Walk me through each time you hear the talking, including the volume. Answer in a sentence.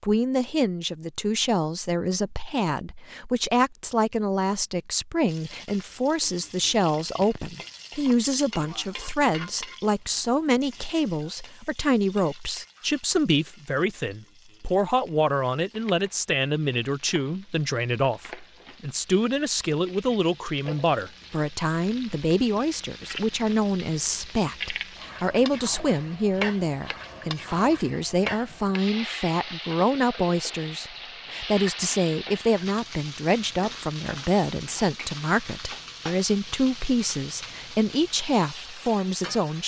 You can hear the talking from 0.0 to 39.6 s, at a steady volume.